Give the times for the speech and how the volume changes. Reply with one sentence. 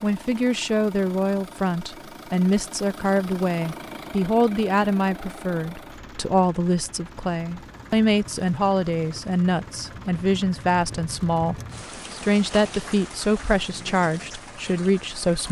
You can hear the speech from 0.0 to 15.4 s, at a steady volume.